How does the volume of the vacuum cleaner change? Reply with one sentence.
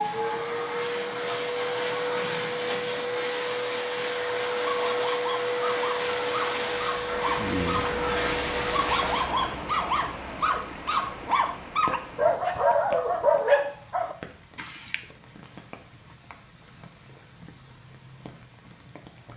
The loudness of the vacuum cleaner stays about the same.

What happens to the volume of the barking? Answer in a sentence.
The volume of the barking goes up.